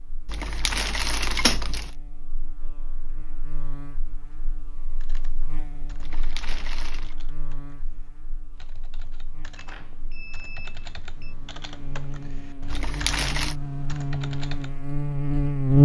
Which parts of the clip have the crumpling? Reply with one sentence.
You can hear the crumpling from 0.2 to 1.9 s, from 6.0 to 7.2 s and from 12.7 to 13.6 s.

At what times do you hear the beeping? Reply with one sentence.
The beeping can be heard from 9.6 to 11.3 s.